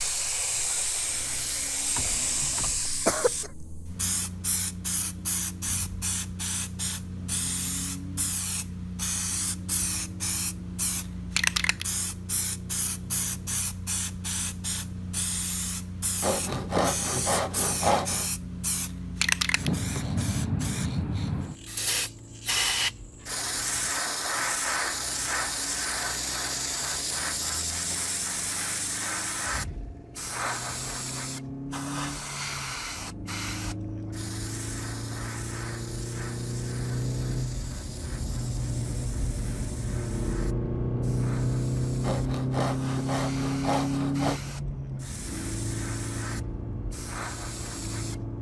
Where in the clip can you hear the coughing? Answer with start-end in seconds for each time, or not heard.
1.9-3.5.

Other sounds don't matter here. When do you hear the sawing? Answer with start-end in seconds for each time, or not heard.
16.2-18.3, 42.0-44.4.